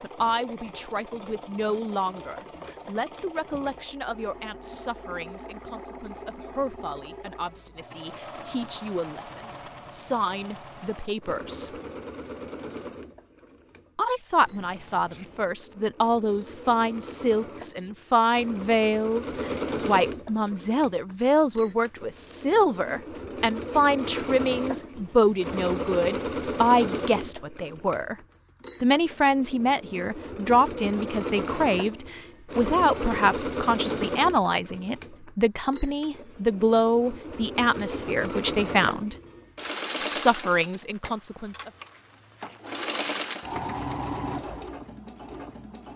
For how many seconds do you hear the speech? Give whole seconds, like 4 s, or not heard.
38 s.